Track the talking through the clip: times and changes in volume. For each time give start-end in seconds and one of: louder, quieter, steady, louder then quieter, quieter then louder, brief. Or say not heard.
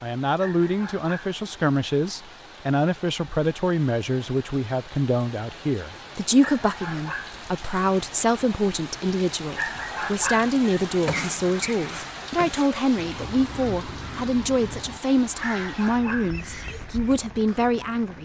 0.0-18.1 steady.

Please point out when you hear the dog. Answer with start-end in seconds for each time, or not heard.
0.4-1.1, 6.4-7.4, 9.6-10.5, 15.4-16.4.